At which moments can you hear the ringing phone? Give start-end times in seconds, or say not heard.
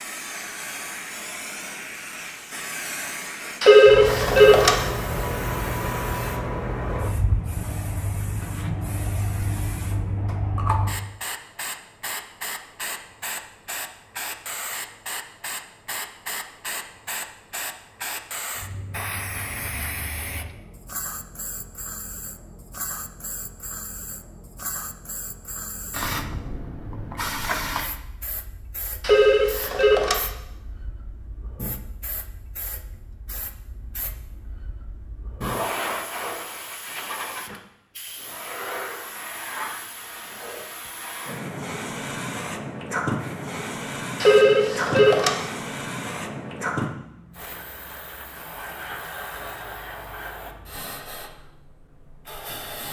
3.6-4.8, 29.0-30.2, 44.2-45.4.